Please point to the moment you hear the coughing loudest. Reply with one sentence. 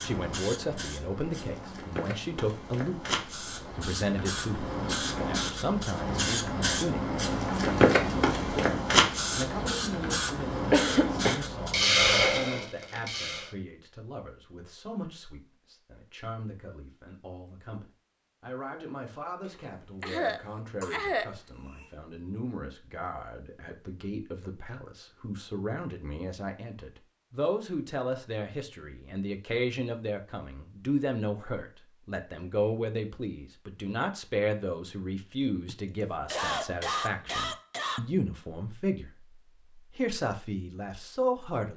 The volume of the coughing peaks at 11 seconds.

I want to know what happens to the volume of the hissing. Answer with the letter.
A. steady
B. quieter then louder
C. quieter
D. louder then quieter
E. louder
E.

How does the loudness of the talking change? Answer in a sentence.
The volume of the talking goes down, then up.